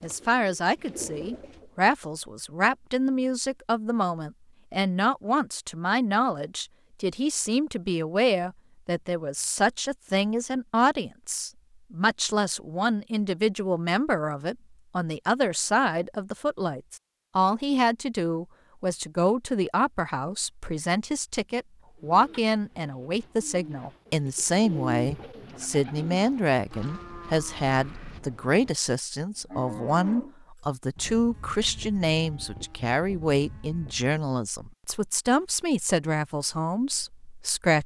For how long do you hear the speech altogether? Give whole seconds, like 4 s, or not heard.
38 s.